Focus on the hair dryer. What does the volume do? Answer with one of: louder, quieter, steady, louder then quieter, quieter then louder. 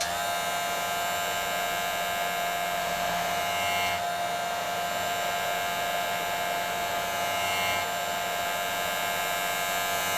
steady.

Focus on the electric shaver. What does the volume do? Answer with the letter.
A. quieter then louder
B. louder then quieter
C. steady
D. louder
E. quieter
C.